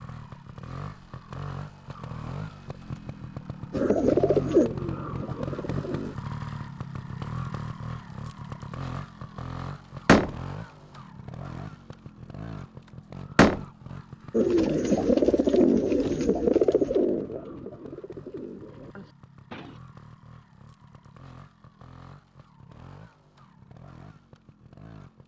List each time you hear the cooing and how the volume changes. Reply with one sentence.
The cooing can be heard briefly from 3.7 to 6.2 s; and from 14.3 to 19.8 s, getting quieter.